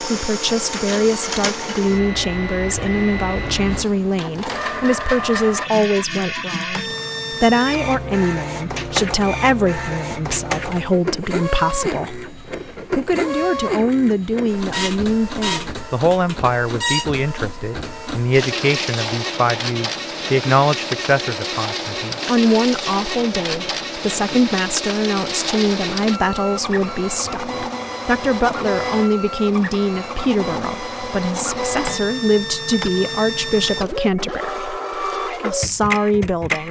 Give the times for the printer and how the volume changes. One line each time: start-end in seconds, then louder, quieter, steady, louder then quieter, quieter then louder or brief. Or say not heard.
0.0-36.6 steady.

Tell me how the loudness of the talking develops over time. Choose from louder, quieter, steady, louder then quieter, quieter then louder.
steady.